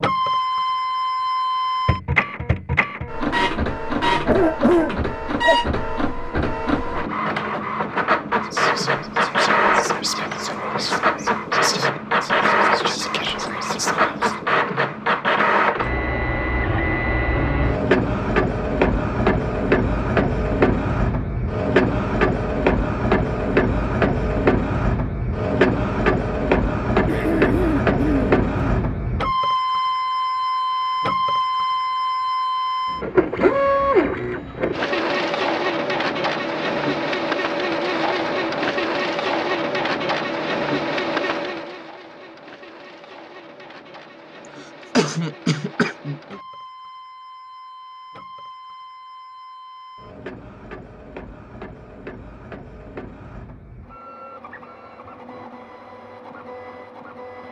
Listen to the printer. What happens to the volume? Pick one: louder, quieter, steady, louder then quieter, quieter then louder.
quieter.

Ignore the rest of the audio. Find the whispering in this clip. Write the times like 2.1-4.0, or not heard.
8.4-14.4.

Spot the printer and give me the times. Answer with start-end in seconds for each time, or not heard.
0.0-57.4.